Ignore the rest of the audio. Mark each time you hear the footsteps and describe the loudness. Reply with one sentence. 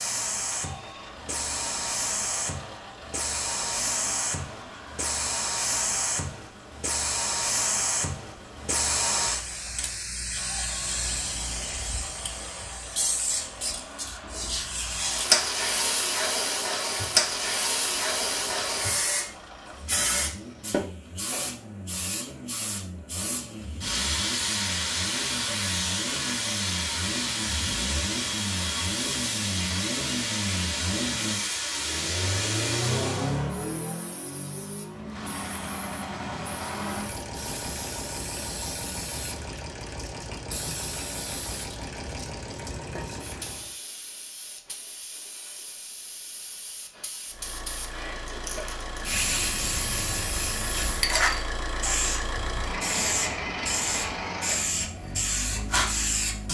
The footsteps can't be heard in this clip.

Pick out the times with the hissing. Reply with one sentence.
The hissing can be heard from 0.0 to 56.4 s.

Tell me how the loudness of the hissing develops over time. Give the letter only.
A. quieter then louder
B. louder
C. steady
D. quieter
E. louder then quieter
A.